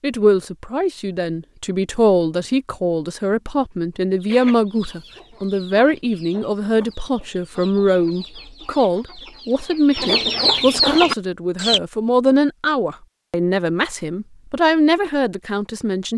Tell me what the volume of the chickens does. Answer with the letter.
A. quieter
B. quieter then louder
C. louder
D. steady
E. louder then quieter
C.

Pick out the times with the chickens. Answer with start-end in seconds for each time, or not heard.
4.2-11.8.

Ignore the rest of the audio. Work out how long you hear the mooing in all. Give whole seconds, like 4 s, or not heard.
not heard.